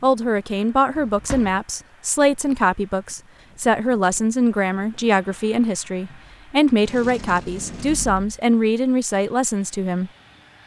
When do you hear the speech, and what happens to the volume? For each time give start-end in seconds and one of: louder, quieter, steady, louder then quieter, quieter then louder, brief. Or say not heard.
0.0-10.1 steady.